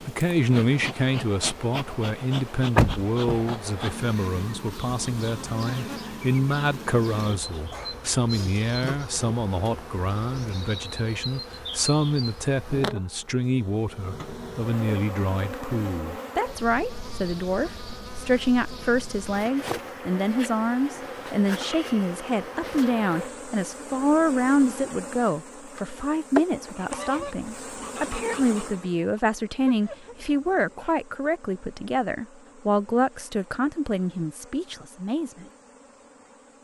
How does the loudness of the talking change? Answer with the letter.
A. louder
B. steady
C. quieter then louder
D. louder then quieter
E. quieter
B.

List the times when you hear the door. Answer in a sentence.
You can hear the door from 2.8 to 3.5 s.